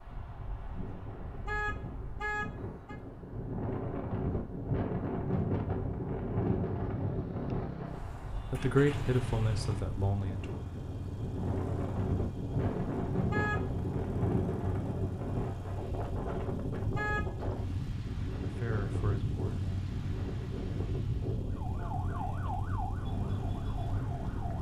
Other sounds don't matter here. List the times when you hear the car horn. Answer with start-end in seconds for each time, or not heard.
1.4-3.0, 13.3-13.8, 16.9-17.4.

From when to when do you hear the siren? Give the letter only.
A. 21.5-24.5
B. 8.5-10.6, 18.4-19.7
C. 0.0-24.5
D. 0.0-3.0
A.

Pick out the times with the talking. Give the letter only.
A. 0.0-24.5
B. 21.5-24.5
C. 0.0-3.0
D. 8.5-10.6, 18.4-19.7
D.